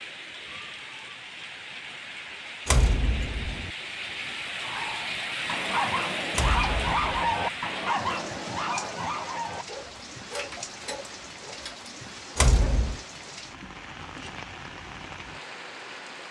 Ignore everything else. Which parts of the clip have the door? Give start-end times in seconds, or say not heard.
2.6-3.7, 6.3-7.4, 12.3-13.0.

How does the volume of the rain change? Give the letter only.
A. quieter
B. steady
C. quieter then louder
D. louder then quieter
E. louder
D.